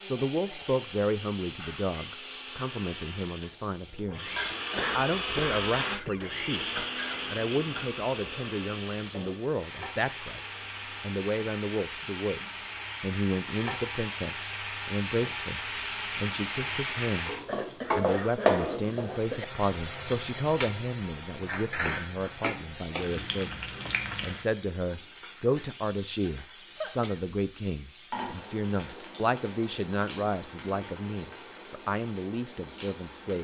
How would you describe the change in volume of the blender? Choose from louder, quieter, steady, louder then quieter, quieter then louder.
louder then quieter.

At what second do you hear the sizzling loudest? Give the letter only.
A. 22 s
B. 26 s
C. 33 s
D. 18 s
D.